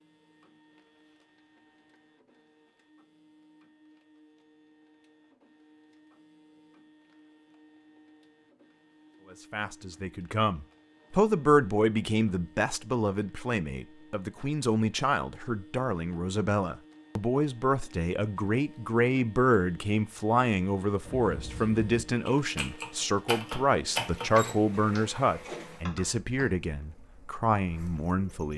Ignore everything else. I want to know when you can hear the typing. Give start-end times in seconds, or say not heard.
21.1-26.6.